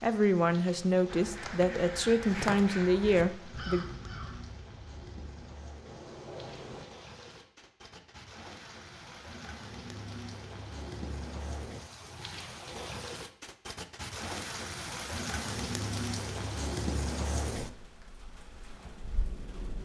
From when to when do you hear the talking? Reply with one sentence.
The talking can be heard from 0.0 to 3.9 s.